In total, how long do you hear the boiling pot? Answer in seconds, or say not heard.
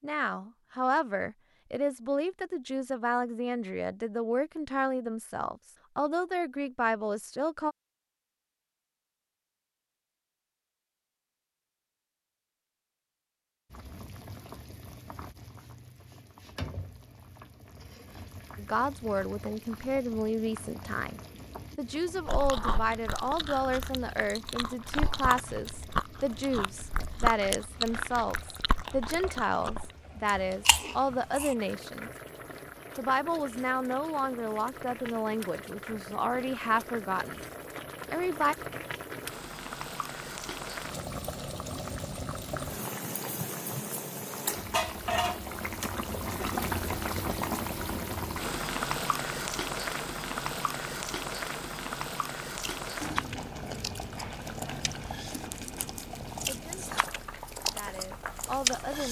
45 s.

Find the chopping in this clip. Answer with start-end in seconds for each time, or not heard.
not heard.